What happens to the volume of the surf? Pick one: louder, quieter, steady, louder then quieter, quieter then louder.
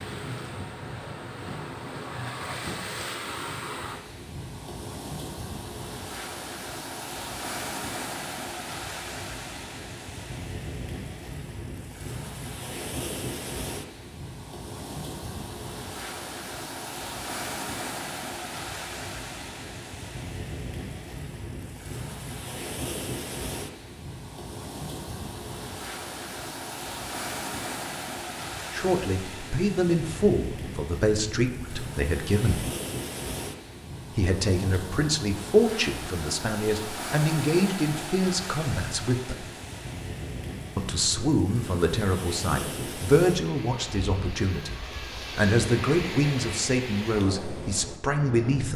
steady.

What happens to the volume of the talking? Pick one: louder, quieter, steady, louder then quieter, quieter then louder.
steady.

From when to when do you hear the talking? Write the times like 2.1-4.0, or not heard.
28.7-32.6, 34.1-39.5, 40.8-48.7.